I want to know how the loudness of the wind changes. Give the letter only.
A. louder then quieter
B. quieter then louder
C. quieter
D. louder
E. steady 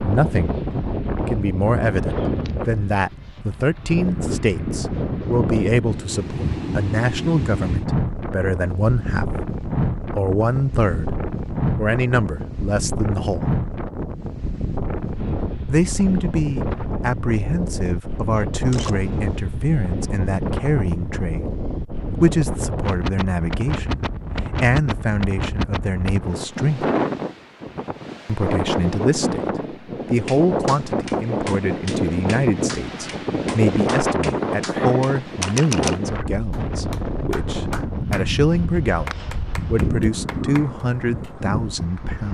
E.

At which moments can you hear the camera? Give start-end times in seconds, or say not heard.
18.6-19.4, 35.4-36.0.